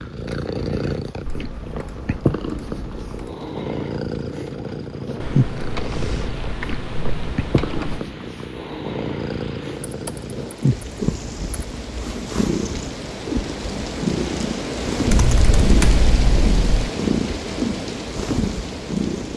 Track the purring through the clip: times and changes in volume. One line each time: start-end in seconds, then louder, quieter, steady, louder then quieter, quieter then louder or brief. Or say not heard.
0.0-19.3 steady.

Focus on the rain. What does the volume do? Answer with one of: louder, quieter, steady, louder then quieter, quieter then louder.
louder.